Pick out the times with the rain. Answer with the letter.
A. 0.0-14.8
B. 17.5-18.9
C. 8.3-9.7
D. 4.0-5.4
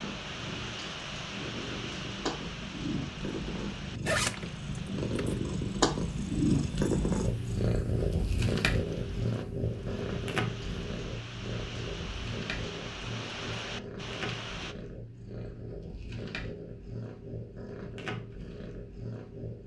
A.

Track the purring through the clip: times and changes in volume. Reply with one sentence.
The purring can be heard from 0.0 to 19.6 s, getting louder then quieter.